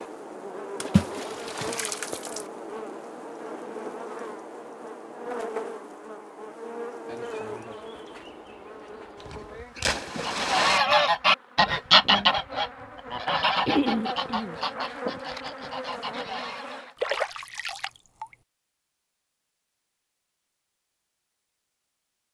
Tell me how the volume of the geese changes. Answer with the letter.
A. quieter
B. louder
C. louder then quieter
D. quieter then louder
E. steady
A.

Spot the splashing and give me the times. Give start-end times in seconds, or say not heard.
0.8-2.5, 9.2-10.8, 17.0-18.4.